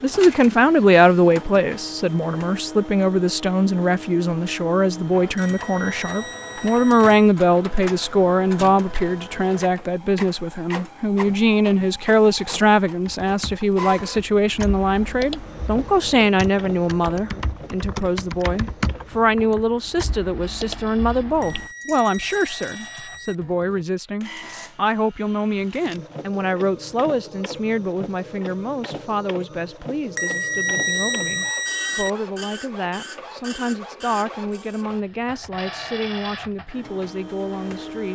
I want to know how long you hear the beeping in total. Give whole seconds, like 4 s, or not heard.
6 s.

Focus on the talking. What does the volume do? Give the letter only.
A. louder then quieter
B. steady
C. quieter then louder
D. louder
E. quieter
E.